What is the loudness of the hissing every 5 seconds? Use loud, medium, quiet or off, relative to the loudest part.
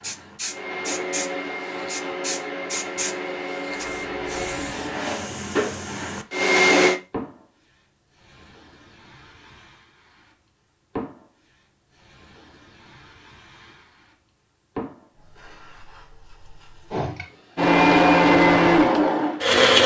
loud, medium, medium, quiet.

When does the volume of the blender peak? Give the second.
18 s.